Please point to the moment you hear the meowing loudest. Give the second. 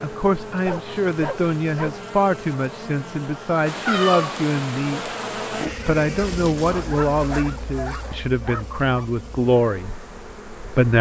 4 s.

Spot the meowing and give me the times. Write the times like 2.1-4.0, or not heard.
3.6-5.7.